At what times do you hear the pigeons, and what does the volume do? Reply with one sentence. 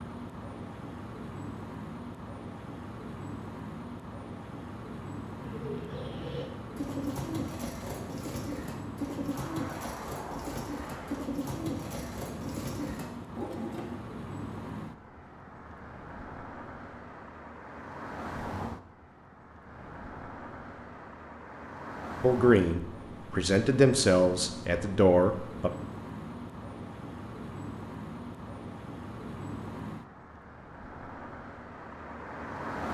You can hear the pigeons from 5.4 to 14.0 s, at a steady volume.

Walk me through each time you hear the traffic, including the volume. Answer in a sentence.
You can hear the traffic from 0.0 to 32.8 s, at a steady volume.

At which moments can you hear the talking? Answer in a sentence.
The talking can be heard from 22.2 to 25.7 s.